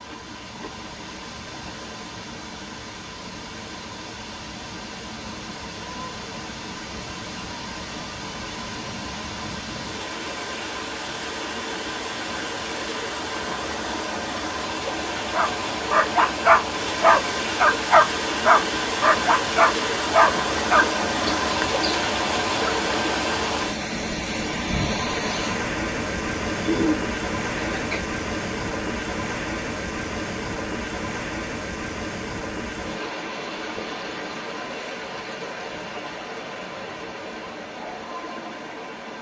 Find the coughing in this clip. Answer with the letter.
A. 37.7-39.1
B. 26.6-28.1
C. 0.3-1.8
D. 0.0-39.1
B.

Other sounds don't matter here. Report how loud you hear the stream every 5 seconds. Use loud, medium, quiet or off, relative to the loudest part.
quiet, medium, medium, loud, loud, loud, medium, medium.